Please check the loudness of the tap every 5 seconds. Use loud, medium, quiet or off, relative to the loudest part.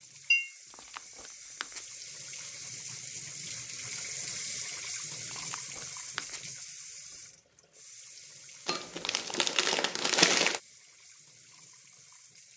loud, loud, quiet.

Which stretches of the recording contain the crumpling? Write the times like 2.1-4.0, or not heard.
0.7-2.0, 5.2-6.5, 8.7-10.6.